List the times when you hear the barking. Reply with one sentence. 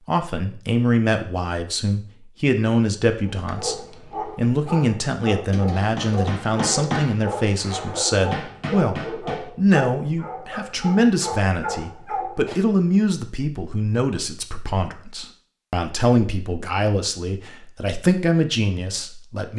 The barking can be heard from 3.2 to 12.6 s.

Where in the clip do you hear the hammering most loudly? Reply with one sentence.
The volume of the hammering peaks at 7 seconds.